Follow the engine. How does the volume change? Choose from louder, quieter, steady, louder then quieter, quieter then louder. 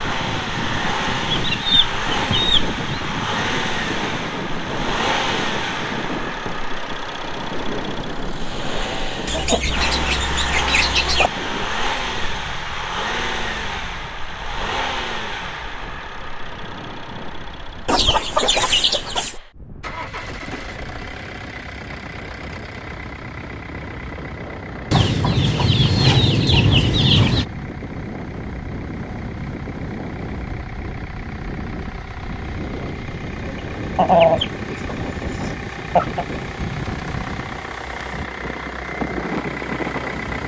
quieter then louder.